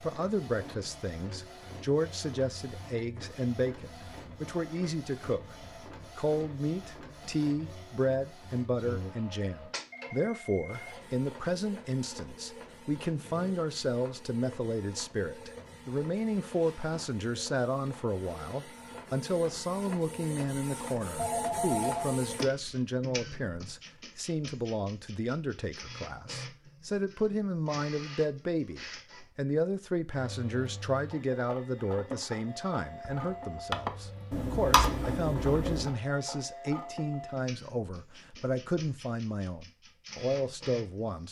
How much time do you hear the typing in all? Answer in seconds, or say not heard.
2 s.